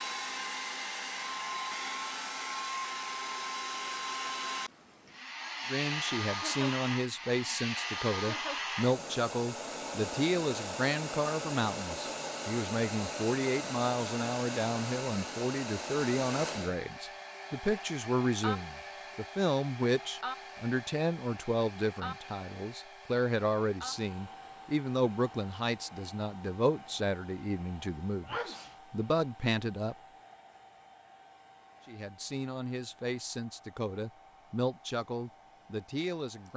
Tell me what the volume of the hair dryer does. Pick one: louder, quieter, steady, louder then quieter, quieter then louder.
quieter.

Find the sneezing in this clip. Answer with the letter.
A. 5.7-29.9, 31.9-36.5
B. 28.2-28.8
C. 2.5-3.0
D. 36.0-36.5
B.